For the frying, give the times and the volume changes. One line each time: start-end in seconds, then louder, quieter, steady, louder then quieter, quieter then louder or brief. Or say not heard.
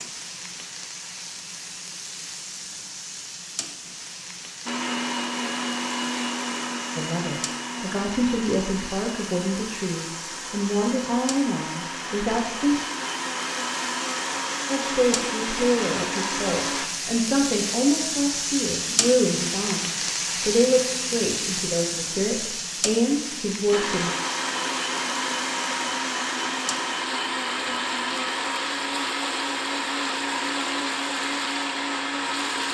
0.0-32.7 louder then quieter.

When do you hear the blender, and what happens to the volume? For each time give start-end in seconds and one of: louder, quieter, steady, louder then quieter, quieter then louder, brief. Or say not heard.
4.7-16.9 quieter then louder
23.7-32.7 steady.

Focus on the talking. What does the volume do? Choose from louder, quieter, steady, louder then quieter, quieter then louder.
steady.